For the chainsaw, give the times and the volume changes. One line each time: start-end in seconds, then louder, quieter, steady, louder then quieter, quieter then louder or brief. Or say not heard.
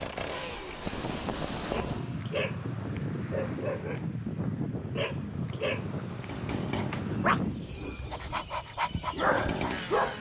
0.0-2.4 brief
6.1-10.1 quieter then louder.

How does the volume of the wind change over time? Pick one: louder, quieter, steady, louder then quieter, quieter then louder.
quieter.